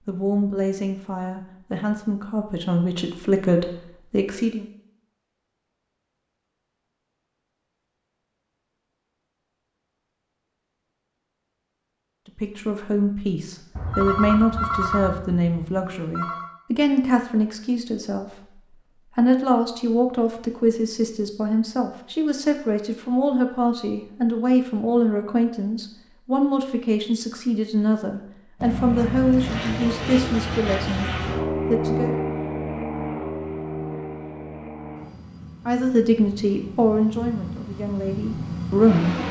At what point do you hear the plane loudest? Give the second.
32 s.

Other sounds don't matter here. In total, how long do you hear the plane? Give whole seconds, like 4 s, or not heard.
11 s.